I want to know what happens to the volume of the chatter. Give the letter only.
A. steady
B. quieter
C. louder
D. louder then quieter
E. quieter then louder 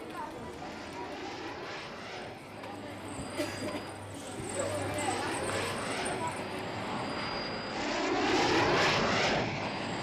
C.